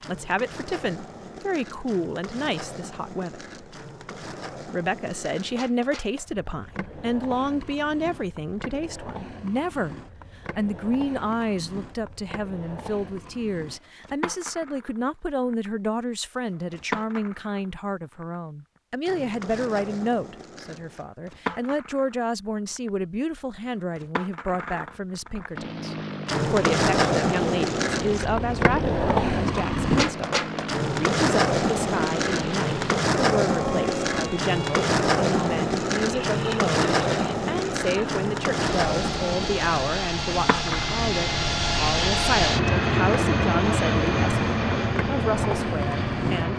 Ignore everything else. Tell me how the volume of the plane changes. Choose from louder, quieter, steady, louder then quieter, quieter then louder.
louder.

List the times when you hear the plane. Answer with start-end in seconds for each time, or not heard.
25.6-46.5.